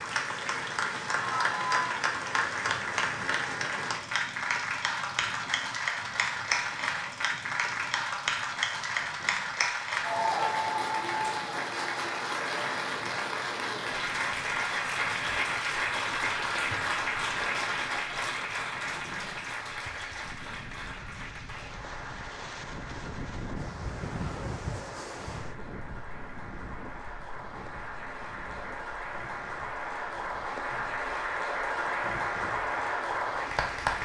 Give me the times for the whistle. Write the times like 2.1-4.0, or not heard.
not heard.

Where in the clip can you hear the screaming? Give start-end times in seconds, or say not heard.
1.1-1.9.